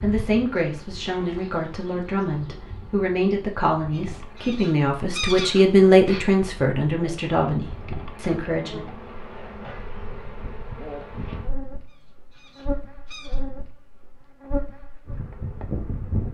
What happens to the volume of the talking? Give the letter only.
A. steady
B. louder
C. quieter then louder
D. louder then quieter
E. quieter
D.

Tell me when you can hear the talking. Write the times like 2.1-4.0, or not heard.
0.0-8.8.